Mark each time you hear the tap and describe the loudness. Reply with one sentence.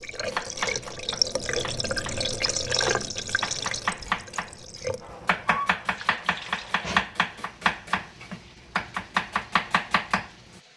The tap can be heard from 0.0 to 10.7 s, getting quieter.